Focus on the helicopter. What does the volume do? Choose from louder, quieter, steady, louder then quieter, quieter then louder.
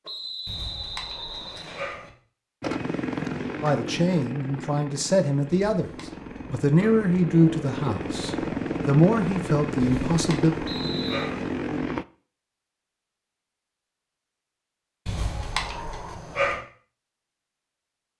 quieter then louder.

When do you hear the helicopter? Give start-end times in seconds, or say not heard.
2.6-12.1.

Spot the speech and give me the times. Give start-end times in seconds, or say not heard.
3.6-5.9, 6.5-10.6.